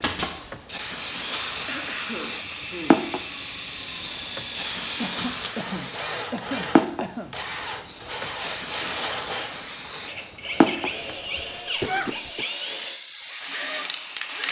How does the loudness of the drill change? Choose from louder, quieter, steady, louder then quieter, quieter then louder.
steady.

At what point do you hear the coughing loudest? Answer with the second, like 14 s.
12 s.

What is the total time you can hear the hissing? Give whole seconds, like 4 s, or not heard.
14 s.